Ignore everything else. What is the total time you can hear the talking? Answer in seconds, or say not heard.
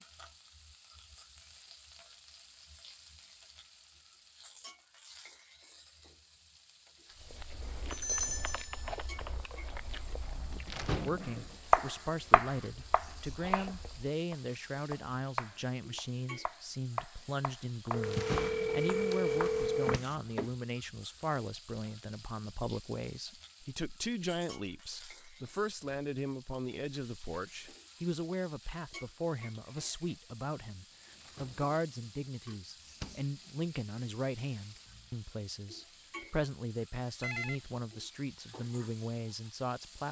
29 s.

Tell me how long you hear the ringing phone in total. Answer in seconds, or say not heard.
5 s.